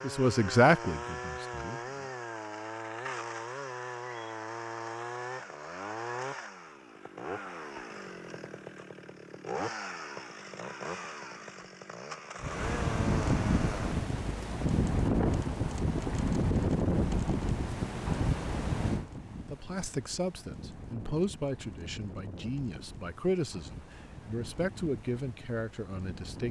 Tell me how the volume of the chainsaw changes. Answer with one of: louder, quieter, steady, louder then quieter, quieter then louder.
steady.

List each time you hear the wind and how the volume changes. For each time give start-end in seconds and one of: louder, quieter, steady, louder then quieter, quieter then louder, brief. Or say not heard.
12.4-26.4 quieter.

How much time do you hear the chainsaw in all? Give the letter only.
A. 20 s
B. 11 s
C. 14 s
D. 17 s
C.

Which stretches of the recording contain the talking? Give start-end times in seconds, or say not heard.
0.0-2.0, 19.5-26.4.